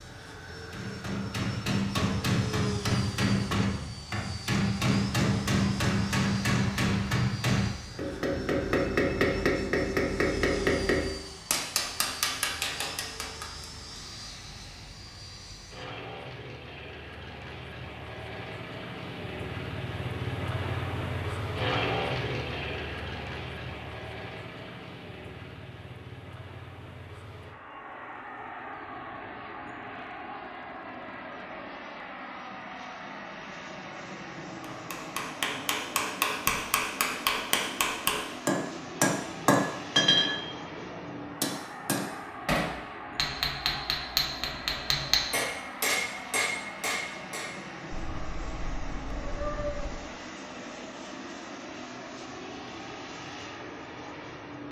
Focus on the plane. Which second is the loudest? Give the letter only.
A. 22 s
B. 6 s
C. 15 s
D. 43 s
A.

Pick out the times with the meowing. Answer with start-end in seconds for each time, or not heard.
47.9-49.9.